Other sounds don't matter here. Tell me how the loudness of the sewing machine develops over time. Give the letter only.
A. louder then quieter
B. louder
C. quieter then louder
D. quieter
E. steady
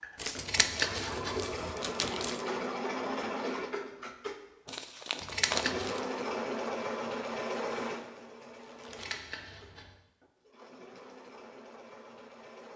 D.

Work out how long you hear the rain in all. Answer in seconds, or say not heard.
not heard.